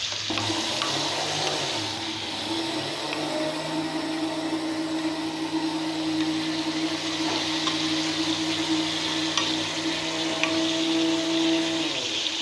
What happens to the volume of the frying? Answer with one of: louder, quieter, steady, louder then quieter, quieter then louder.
quieter then louder.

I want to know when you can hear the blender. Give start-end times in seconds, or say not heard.
0.0-12.3.